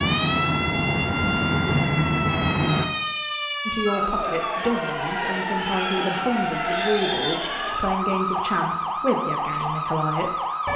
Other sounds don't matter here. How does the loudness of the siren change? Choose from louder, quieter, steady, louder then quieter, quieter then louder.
steady.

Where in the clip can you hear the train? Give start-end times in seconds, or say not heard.
0.0-2.9.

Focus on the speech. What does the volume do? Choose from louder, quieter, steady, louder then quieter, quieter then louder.
steady.